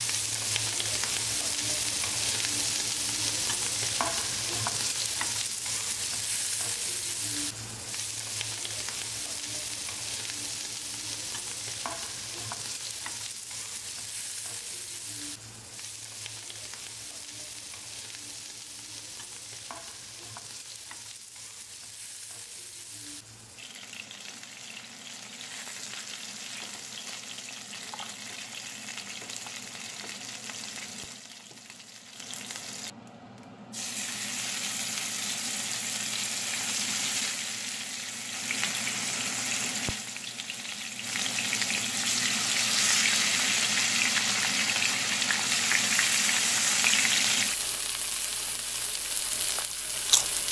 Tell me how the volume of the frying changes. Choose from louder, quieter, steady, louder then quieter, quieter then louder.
quieter then louder.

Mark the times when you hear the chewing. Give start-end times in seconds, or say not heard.
49.5-50.3.